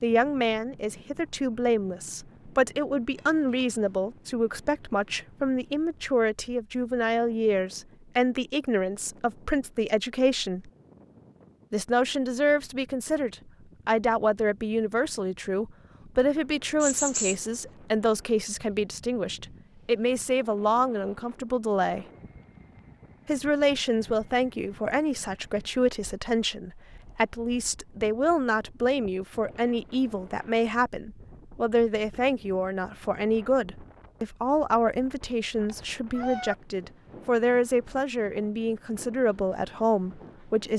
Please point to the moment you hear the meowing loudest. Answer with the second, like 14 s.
17 s.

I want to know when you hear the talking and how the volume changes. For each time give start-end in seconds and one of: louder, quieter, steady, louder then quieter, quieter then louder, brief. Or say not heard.
0.0-10.7 steady
11.7-22.1 steady
23.2-40.7 steady.